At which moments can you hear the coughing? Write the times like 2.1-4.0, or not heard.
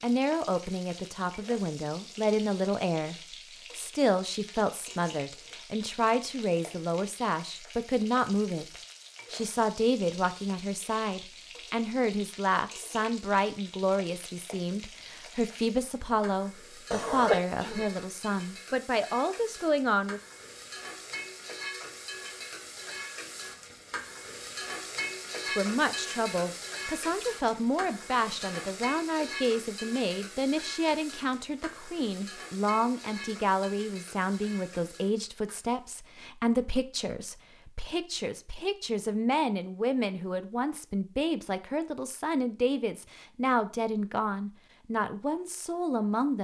16.9-17.9.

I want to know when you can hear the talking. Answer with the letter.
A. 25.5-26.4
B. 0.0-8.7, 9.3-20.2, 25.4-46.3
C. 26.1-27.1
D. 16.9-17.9
B.